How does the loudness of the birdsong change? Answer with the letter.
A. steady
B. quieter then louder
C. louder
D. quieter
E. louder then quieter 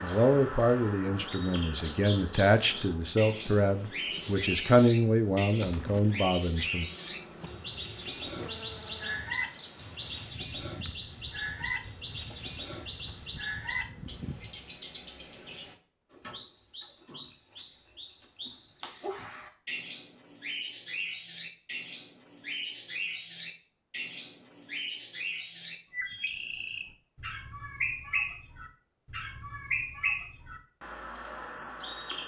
A.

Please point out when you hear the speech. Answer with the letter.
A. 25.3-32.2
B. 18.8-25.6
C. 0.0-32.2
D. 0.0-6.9
D.